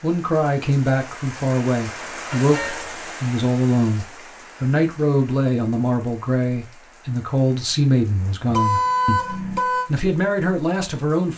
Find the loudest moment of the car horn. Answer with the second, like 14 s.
9 s.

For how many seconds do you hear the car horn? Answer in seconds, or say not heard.
2 s.